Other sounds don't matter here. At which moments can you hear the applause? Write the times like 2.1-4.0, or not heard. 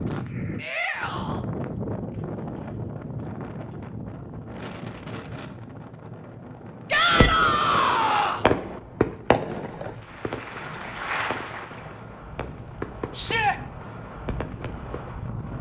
9.9-12.1.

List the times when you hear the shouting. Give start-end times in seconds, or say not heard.
0.6-1.4, 6.9-8.4, 13.2-13.6.